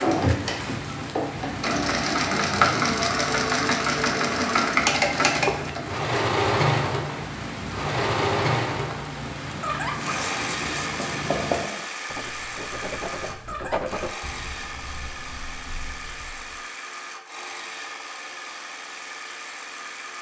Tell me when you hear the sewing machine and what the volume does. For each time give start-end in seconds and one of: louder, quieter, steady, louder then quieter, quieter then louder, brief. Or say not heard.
0.0-20.1 quieter.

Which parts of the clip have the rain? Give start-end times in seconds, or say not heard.
0.0-11.7.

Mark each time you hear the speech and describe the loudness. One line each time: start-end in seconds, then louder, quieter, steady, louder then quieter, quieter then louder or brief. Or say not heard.
not heard.